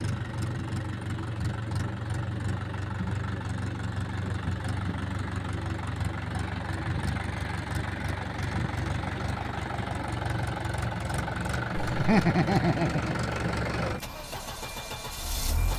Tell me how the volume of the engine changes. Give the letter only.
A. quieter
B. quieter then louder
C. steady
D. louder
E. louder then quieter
C.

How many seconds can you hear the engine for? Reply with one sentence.
You can hear the engine for 16 seconds altogether.